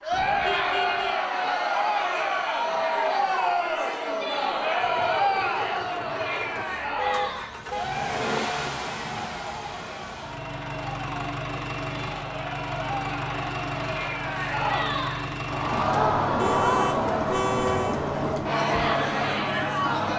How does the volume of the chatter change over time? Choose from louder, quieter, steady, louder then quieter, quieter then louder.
quieter then louder.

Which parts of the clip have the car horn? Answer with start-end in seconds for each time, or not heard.
0.1-1.1, 7.0-7.8, 16.4-18.0.